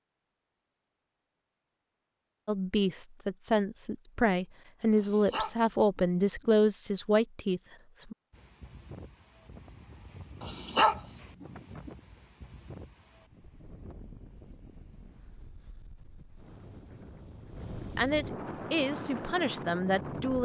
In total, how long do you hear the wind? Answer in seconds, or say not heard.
12 s.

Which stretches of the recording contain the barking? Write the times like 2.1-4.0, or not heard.
5.0-6.5, 10.4-11.9.